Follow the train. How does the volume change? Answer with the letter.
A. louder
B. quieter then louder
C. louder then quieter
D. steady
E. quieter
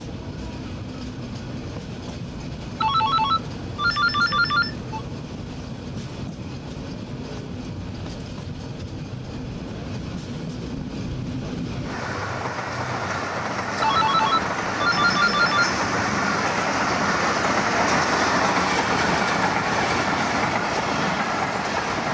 A.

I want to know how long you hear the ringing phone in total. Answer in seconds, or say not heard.
4 s.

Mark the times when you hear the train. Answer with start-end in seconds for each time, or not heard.
0.0-22.0.